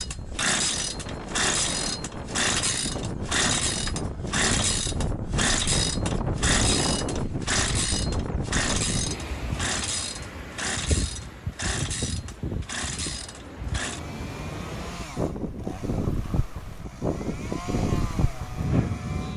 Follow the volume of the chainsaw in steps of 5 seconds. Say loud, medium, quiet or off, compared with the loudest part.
loud, loud, medium, quiet.